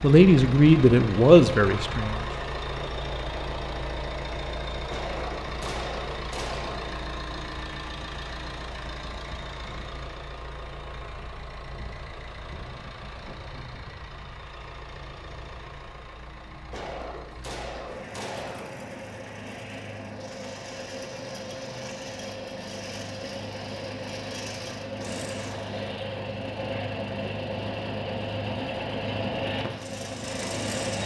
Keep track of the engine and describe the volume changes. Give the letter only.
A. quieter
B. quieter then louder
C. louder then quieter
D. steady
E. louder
B.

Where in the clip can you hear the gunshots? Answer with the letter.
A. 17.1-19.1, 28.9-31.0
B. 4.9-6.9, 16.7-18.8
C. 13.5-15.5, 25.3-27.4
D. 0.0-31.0
B.